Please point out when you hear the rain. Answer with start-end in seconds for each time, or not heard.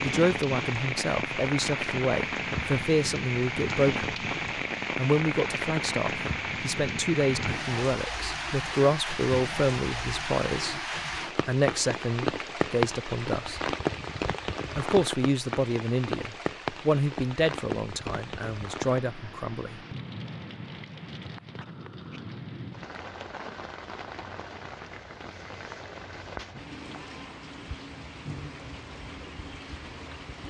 0.0-30.4.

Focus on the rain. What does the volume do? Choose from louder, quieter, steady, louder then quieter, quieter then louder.
quieter.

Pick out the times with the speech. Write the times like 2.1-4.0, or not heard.
0.0-4.2, 5.0-10.8, 11.4-13.7, 14.8-19.8.